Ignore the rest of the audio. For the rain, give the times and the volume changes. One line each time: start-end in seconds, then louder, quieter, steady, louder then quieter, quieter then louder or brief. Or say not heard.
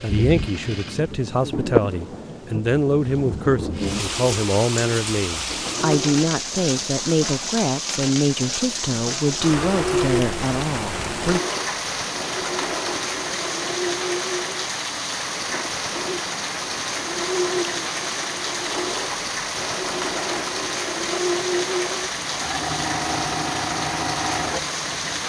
0.0-25.2 steady.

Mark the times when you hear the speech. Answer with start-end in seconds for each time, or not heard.
0.0-11.4.